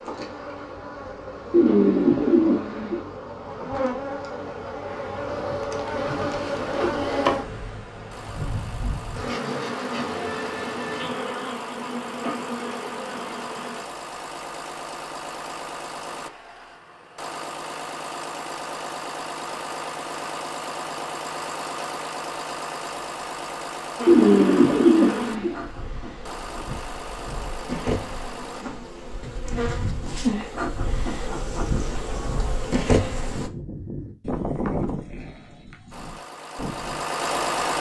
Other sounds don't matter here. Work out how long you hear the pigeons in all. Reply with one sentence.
The pigeons can be heard for 3 seconds in total.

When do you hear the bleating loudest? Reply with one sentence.
The volume of the bleating peaks at 35 seconds.